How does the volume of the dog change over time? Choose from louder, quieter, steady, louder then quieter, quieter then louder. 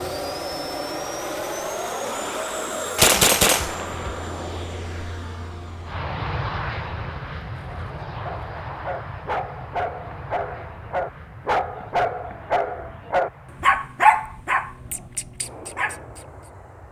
louder then quieter.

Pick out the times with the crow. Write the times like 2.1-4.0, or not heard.
not heard.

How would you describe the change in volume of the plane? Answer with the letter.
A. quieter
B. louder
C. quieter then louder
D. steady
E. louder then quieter
A.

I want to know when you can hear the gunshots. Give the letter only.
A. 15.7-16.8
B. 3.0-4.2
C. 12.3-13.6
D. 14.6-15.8
B.